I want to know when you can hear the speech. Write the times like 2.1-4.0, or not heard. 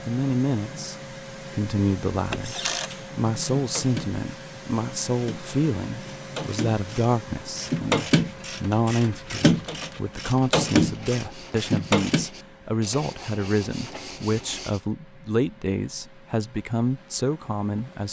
0.1-18.0.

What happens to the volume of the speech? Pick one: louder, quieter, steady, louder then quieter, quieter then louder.
steady.